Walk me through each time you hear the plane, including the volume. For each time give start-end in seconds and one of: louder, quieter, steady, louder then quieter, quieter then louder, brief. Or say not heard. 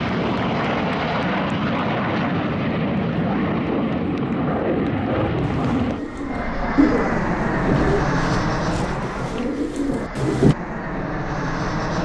0.0-12.0 quieter.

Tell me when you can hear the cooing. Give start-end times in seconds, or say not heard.
5.4-10.6.